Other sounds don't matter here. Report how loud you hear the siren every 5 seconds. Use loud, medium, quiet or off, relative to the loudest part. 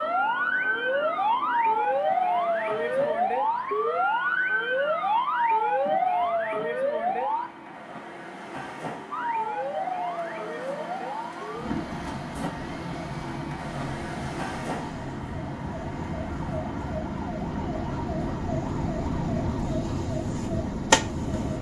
loud, loud, medium, medium, loud.